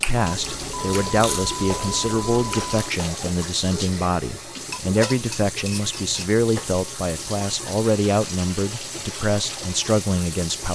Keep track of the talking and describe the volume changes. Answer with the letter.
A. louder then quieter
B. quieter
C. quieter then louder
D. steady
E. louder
D.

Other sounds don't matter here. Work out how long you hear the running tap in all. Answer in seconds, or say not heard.
11 s.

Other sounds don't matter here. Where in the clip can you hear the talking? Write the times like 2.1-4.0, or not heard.
0.1-10.7.